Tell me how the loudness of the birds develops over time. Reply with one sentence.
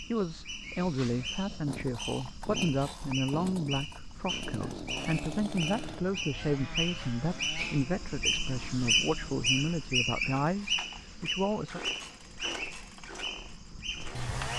The loudness of the birds goes up, then down.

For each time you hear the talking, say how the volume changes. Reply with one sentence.
You can hear the talking from 0.1 to 11.8 s, at a steady volume.